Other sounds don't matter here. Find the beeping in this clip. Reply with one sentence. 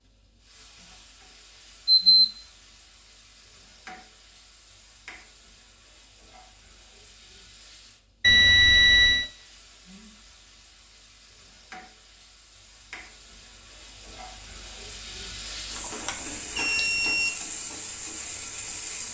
The beeping can be heard from 1.9 to 2.3 s, from 8.2 to 9.3 s and from 15.8 to 17.3 s.